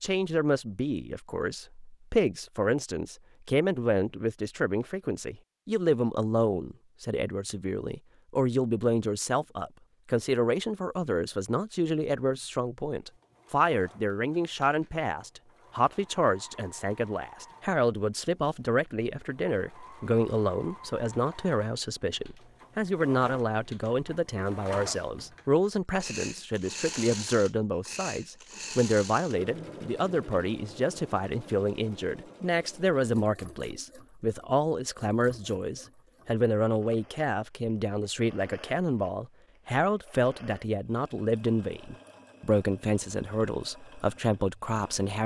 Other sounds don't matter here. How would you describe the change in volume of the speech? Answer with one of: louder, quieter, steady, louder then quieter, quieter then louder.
steady.